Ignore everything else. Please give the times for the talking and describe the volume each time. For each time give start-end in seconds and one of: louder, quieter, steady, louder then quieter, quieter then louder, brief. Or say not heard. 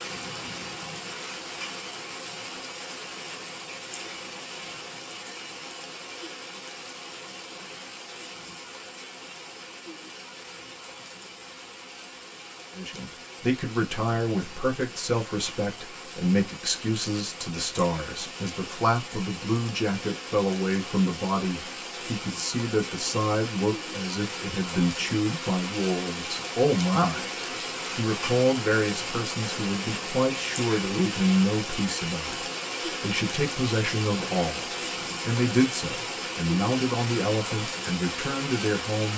12.8-27.3 steady
27.9-39.1 steady.